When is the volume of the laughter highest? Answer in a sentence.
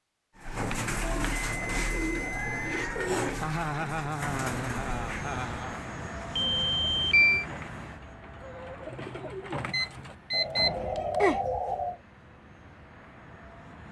The loudest moment of the laughter is at 4 seconds.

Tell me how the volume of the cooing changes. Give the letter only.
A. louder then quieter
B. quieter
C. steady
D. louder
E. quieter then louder
E.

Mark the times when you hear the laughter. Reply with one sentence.
You can hear the laughter from 3.4 to 5.8 s.